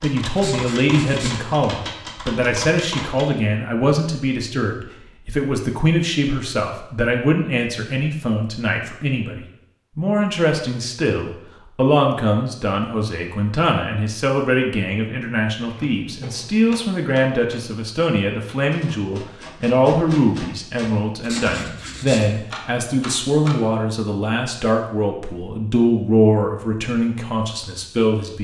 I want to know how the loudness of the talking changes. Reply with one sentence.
The loudness of the talking stays about the same.